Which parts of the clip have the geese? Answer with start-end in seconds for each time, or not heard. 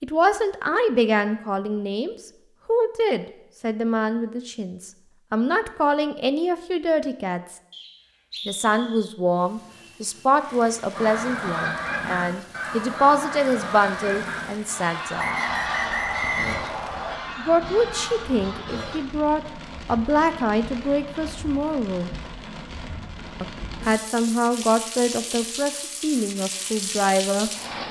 10.9-18.9.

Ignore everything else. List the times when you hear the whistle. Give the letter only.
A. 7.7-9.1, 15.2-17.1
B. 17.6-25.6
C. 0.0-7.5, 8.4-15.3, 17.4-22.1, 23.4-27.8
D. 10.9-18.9
A.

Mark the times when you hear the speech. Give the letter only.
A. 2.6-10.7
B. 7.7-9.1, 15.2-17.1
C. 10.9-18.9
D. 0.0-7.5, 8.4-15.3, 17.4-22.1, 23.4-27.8
D.